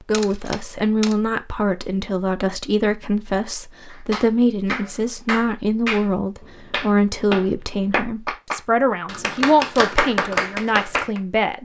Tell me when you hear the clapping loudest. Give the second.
10 s.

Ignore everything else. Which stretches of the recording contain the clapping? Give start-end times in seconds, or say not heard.
3.9-11.2.